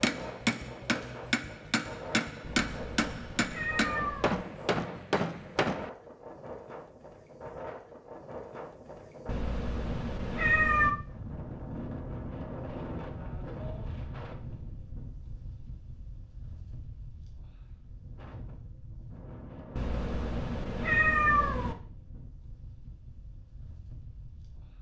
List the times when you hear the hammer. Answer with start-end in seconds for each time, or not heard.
0.0-5.9.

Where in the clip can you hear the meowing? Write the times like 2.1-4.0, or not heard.
2.4-4.4, 9.2-10.9, 19.8-21.8.